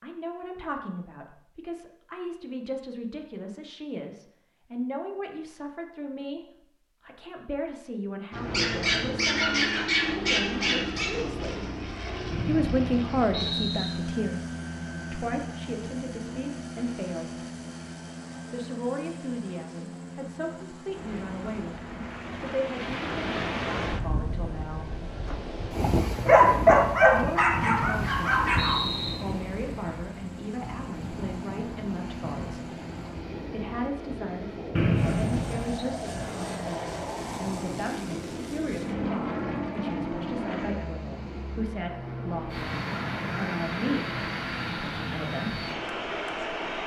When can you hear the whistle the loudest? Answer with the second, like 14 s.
35 s.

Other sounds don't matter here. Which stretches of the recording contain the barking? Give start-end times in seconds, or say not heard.
8.5-11.1, 26.1-28.8.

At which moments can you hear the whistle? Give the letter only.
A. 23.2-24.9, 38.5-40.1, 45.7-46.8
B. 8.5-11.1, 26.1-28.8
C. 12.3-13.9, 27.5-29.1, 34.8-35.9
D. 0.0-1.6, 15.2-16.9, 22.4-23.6
C.